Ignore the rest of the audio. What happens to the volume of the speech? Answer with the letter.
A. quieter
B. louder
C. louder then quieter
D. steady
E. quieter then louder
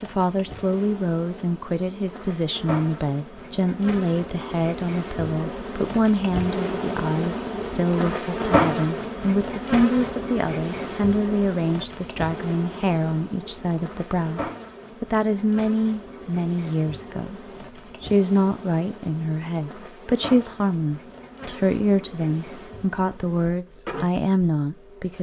D.